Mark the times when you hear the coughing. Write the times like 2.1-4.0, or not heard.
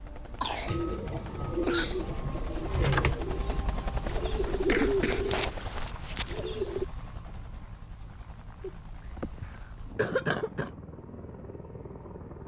0.4-2.0, 4.5-6.5, 8.6-10.7.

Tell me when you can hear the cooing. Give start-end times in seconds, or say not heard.
0.7-6.8.